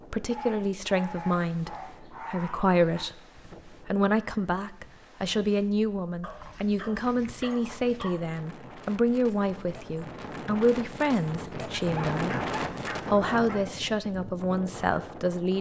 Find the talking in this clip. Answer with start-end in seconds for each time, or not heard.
0.1-3.1, 3.9-12.3, 13.1-15.5.